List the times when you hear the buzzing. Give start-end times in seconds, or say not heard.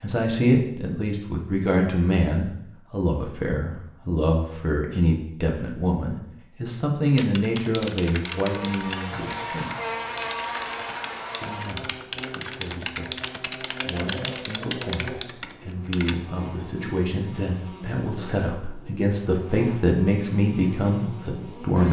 8.2-21.8.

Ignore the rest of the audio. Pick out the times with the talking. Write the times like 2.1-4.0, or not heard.
0.0-9.7, 11.4-21.8.